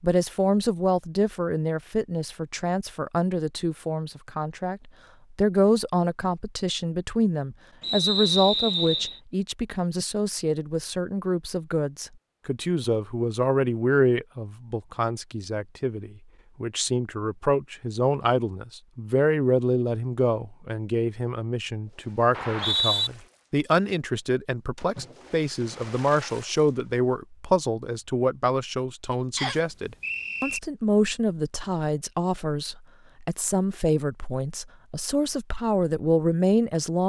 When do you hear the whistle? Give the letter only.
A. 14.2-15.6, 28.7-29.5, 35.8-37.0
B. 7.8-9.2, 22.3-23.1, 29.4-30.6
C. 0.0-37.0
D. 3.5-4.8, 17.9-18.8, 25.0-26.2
B.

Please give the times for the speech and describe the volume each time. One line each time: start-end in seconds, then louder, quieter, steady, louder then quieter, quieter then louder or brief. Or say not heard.
0.0-37.0 steady.